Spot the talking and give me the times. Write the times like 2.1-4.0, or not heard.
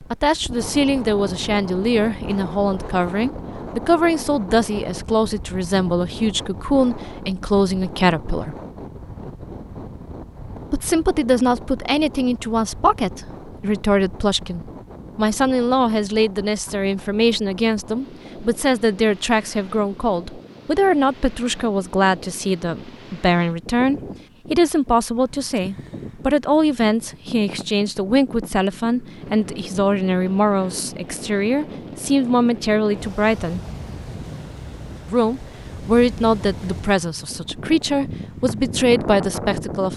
0.1-8.6, 10.7-33.6, 35.0-39.9.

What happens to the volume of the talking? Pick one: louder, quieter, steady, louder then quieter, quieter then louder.
steady.